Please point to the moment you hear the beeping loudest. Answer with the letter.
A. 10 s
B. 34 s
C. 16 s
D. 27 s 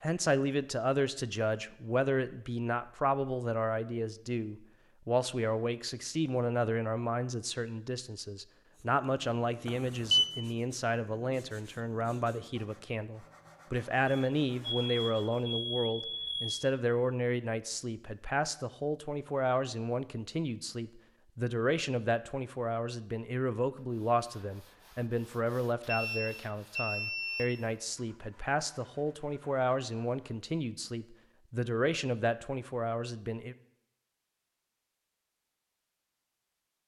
A.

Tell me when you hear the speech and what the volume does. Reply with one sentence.
The speech can be heard from 0.0 to 33.5 s, at a steady volume.